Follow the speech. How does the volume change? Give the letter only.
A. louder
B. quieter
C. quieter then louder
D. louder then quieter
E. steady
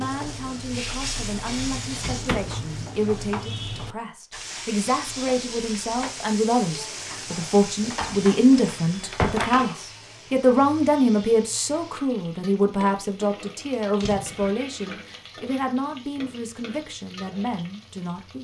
D.